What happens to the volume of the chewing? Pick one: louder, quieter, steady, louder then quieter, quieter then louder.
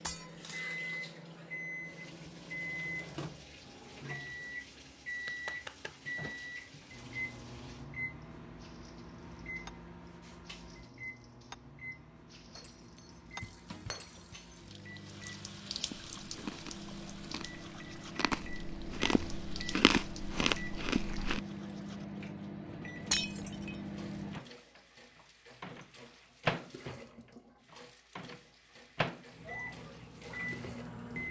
quieter then louder.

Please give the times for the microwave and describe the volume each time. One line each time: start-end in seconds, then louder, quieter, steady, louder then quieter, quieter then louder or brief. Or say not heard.
0.0-31.2 quieter then louder.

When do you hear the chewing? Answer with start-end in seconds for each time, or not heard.
15.8-21.4.